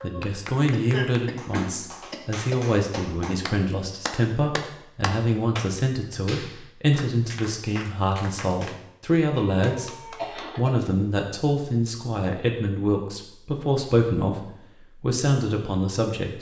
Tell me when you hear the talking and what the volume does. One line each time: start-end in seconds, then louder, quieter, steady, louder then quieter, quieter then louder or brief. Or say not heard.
0.0-16.3 steady.